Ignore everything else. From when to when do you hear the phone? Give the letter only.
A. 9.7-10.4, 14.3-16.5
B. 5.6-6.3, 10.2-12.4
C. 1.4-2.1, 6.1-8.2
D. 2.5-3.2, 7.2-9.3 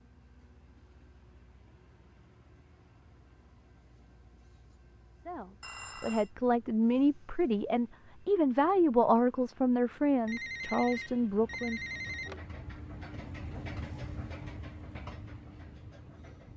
B.